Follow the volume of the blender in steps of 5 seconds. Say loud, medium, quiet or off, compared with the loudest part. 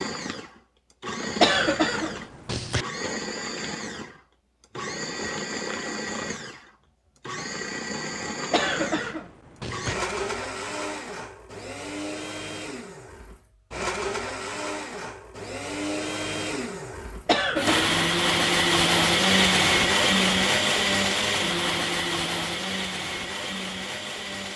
medium, medium, medium, loud, loud.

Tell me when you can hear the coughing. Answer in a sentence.
The coughing can be heard from 1.4 to 2.9 s, from 8.5 to 9.9 s and from 17.2 to 18.0 s.